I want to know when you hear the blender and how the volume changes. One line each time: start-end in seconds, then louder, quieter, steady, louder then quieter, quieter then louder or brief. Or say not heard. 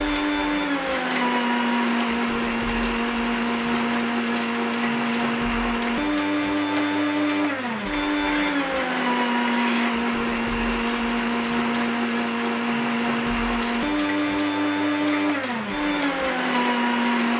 0.0-17.3 steady.